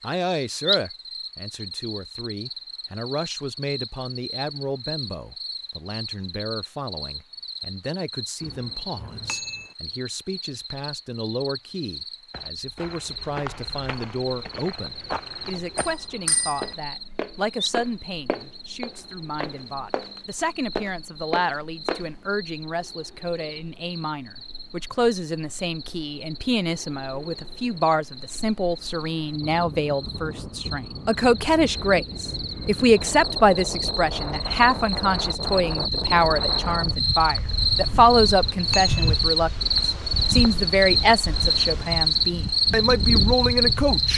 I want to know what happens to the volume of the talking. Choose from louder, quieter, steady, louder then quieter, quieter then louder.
louder.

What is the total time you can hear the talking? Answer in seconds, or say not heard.
43 s.